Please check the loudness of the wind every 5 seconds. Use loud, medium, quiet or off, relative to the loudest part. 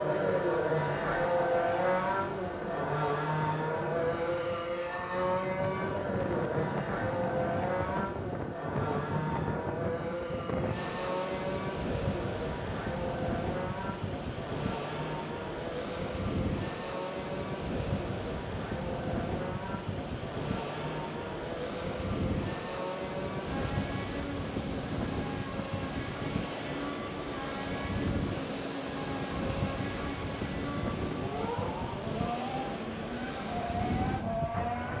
medium, loud, loud, loud, loud, loud, loud.